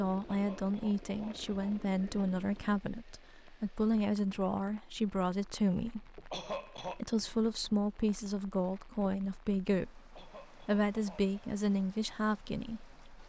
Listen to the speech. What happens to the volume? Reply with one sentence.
The volume of the speech stays about the same.